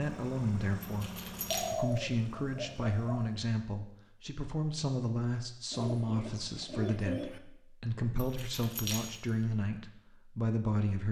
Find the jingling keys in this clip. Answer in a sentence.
The jingling keys can be heard from 0.8 to 1.9 s and from 8.2 to 9.3 s.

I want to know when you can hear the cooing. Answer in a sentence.
The cooing can be heard from 1.5 to 3.2 s and from 5.7 to 7.4 s.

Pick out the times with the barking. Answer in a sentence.
The barking can't be heard in this clip.